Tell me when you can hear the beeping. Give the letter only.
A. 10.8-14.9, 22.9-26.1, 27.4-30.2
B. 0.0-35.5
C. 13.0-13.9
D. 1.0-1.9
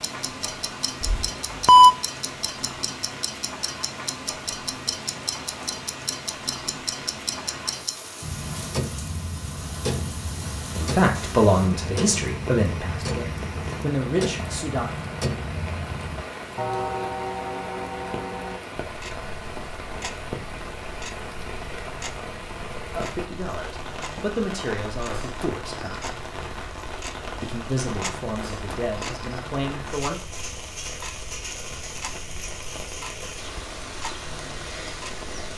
D.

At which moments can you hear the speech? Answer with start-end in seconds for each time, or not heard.
10.8-14.9, 22.9-26.1, 27.4-30.2.